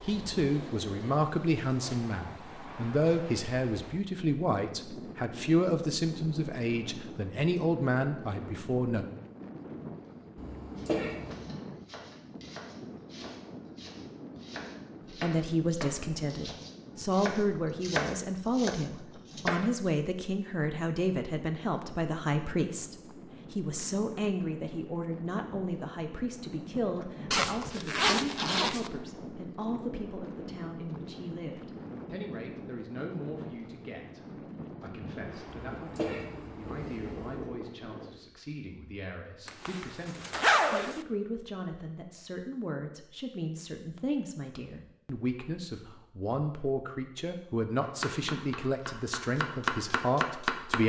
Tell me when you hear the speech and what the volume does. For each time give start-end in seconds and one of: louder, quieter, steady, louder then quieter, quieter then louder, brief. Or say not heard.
0.0-9.1 steady
15.1-50.8 quieter then louder.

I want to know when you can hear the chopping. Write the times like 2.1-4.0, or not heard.
10.8-19.9, 47.8-50.8.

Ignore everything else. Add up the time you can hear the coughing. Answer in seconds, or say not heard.
3 s.